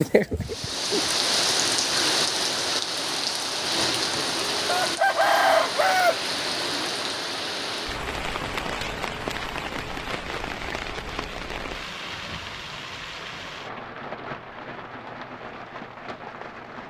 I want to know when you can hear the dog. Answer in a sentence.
You can't hear the dog here.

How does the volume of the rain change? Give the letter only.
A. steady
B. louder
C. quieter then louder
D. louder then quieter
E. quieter
E.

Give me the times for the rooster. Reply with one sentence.
You can hear the rooster from 4.7 to 6.2 s.